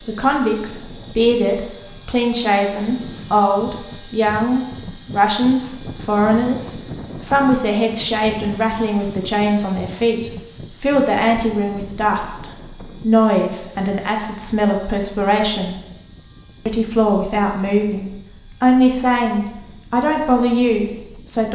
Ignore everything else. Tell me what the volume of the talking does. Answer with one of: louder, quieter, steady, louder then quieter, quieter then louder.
steady.